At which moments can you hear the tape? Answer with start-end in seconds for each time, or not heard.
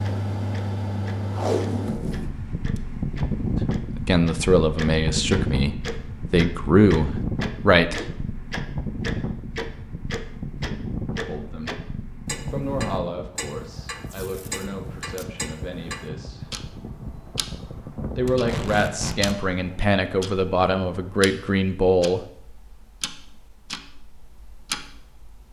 1.3-2.8, 14.1-15.2, 18.2-19.4.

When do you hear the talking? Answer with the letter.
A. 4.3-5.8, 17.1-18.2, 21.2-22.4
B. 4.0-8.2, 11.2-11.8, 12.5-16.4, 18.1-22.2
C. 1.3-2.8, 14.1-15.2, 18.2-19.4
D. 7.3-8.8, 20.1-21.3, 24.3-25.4
B.